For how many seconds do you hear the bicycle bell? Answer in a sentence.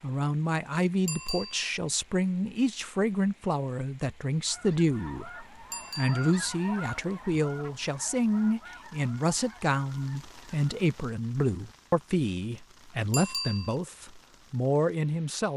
The bicycle bell can be heard for 2 seconds in total.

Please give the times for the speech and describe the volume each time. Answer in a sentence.
The speech can be heard from 0.0 to 15.5 s, at a steady volume.